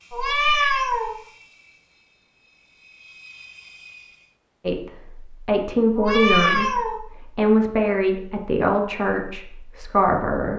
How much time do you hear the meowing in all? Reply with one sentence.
You can hear the meowing for 2 seconds altogether.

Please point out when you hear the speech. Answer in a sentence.
The speech can be heard from 4.7 to 10.5 s.